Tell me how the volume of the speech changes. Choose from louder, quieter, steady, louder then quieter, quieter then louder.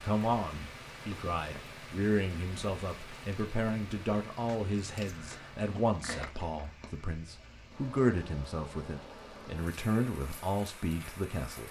steady.